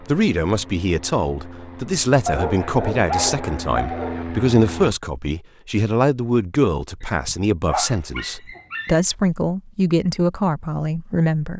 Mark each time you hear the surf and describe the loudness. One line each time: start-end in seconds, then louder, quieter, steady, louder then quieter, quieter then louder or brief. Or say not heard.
not heard.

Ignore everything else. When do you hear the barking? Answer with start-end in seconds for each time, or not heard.
2.2-4.2, 7.0-8.9.